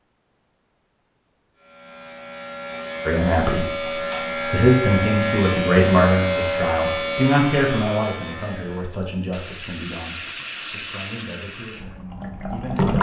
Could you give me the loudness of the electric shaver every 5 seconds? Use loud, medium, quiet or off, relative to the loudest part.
loud, loud, off.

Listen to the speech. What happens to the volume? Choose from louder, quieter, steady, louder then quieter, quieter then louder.
quieter.